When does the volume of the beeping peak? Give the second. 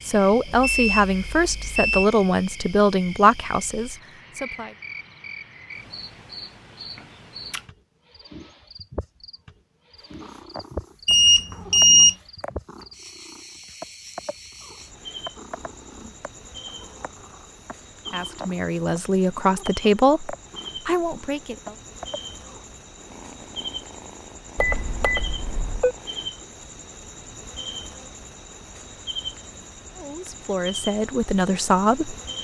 12 s.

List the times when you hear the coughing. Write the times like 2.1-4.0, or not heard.
not heard.